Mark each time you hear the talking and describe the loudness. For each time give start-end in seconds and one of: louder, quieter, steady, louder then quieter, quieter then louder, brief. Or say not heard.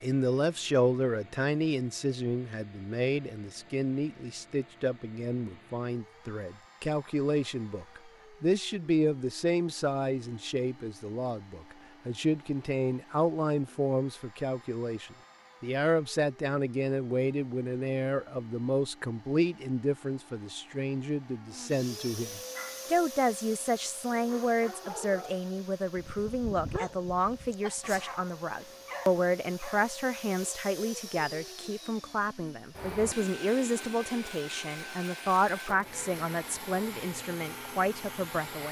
0.0-38.6 steady.